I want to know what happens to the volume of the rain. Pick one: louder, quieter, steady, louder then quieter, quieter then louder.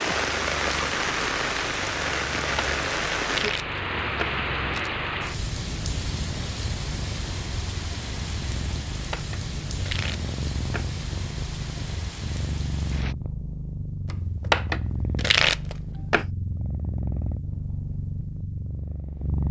quieter.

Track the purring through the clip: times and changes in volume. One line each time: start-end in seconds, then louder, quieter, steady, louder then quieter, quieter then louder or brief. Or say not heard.
0.1-19.4 louder.